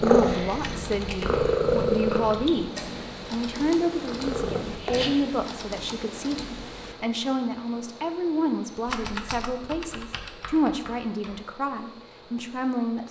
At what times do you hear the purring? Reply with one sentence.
The purring can be heard from 0.0 to 5.1 s.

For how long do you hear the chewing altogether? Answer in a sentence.
You can't hear the chewing here.